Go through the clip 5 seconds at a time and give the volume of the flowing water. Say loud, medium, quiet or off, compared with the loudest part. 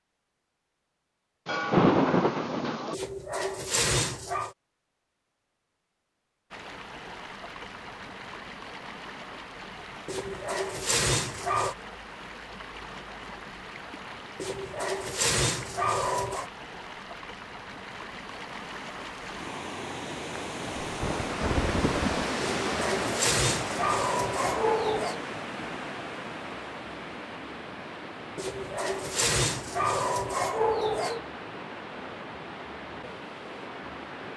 off, medium, medium, medium, loud, medium, medium.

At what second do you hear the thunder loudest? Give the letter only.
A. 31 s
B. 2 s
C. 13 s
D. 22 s
B.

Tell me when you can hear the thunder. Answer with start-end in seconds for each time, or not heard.
1.4-3.0, 20.8-22.2.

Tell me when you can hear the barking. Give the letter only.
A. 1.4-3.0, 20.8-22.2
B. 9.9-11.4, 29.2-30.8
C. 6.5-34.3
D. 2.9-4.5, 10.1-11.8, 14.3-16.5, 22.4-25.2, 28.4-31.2
D.